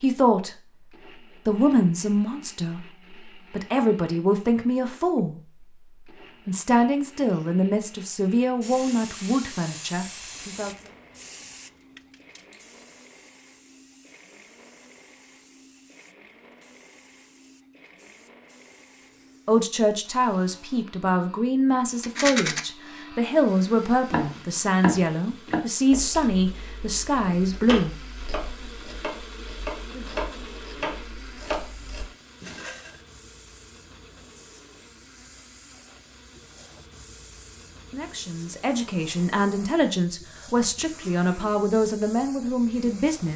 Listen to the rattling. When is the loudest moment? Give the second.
22 s.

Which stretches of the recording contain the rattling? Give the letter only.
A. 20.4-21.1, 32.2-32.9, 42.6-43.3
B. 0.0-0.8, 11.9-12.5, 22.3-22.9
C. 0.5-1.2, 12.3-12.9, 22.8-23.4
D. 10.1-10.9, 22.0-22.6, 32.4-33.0
D.